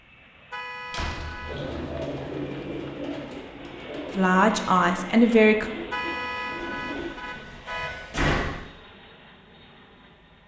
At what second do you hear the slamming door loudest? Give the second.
8 s.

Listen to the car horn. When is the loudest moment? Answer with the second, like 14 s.
6 s.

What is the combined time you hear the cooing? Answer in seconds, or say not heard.
6 s.